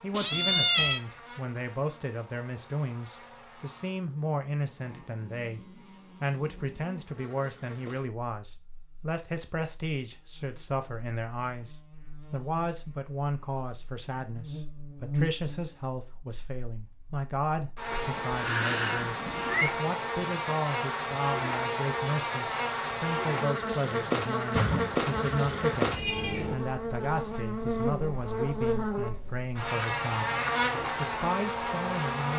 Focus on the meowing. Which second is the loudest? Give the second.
1 s.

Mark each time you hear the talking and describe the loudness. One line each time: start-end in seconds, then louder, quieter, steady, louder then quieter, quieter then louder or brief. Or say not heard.
0.0-32.3 steady.